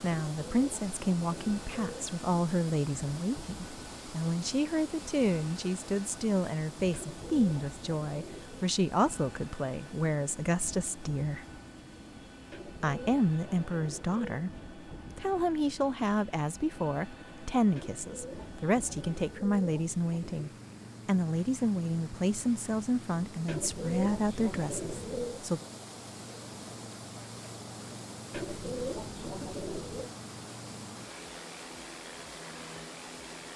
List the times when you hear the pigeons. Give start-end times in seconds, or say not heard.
0.2-2.1, 6.9-8.7, 12.5-14.4, 17.8-20.4, 23.4-25.4, 28.3-30.1.